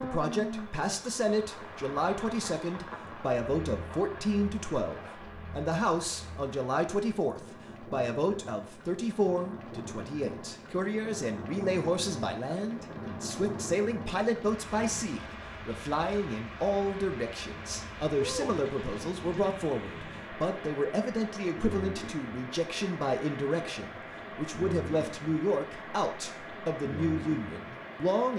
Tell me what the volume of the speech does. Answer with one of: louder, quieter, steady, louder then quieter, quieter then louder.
steady.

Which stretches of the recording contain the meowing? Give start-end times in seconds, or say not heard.
18.1-19.4.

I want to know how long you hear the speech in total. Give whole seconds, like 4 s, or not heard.
28 s.